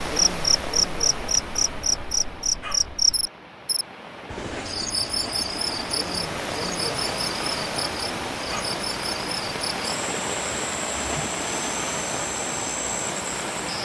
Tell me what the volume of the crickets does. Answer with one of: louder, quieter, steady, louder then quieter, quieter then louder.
quieter.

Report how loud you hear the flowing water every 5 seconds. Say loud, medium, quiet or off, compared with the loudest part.
medium, loud, loud.